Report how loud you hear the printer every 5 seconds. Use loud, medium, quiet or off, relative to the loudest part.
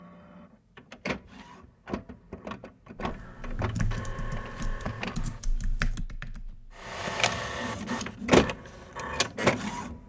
quiet, loud.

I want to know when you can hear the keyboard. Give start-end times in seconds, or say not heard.
3.0-6.8.